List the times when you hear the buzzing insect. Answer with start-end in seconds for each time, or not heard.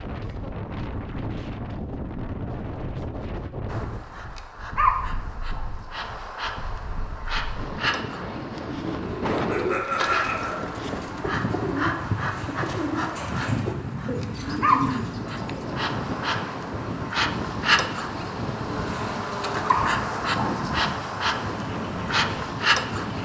3.6-23.1.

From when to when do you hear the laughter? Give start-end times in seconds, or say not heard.
9.3-10.7.